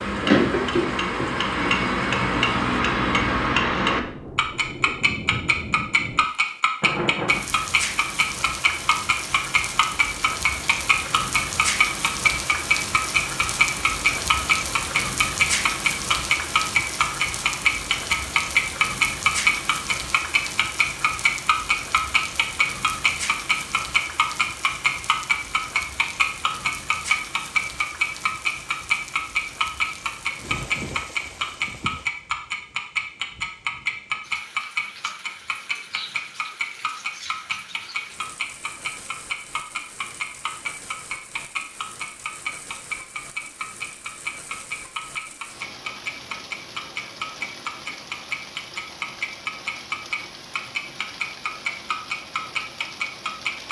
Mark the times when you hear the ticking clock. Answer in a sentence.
The ticking clock can be heard from 0.0 to 53.6 s.